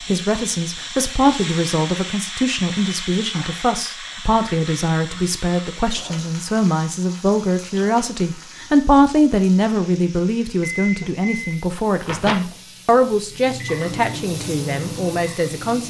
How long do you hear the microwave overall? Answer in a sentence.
You can hear the microwave for 5 seconds altogether.